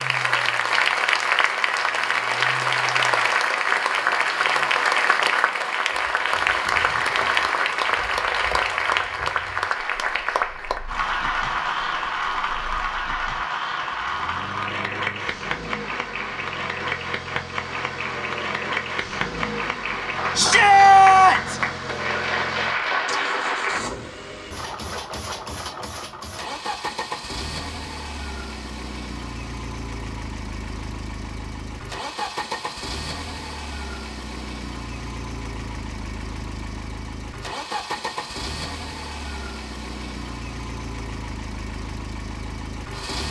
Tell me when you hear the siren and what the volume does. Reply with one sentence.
The siren can't be heard in this clip.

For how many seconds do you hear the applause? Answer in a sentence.
The applause can be heard for 24 seconds in total.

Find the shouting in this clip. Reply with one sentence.
The shouting can be heard from 20.4 to 21.6 s.